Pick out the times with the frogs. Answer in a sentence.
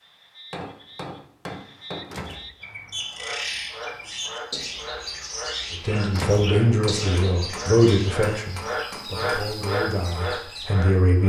You can hear the frogs from 0.0 to 11.2 s.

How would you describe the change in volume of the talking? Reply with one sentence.
The volume of the talking goes down.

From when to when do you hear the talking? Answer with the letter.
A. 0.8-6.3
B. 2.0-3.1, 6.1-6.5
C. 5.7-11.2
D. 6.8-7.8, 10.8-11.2
C.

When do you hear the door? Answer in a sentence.
You can hear the door from 2.0 to 3.1 s and from 6.1 to 6.5 s.